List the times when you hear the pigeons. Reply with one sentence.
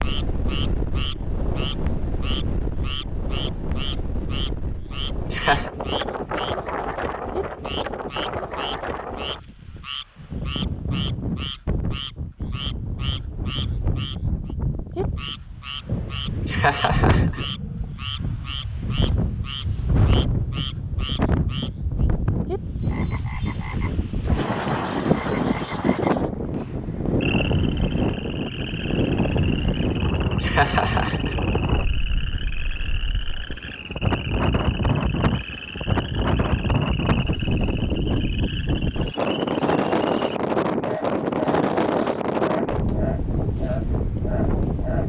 The pigeons can't be heard in this clip.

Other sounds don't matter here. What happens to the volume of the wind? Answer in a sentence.
The loudness of the wind goes up.